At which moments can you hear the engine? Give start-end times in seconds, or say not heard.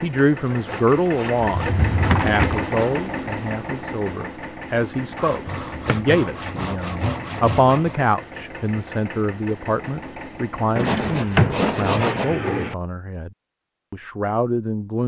0.0-10.9.